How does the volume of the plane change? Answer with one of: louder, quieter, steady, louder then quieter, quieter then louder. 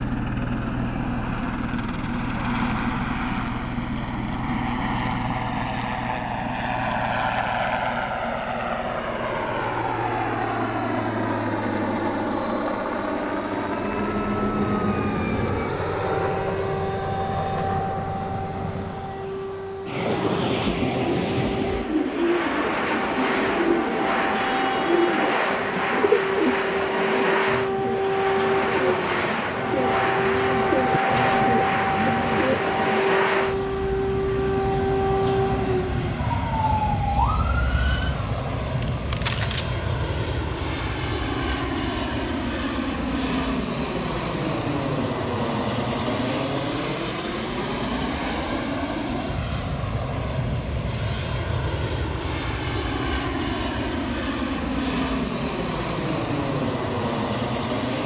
steady.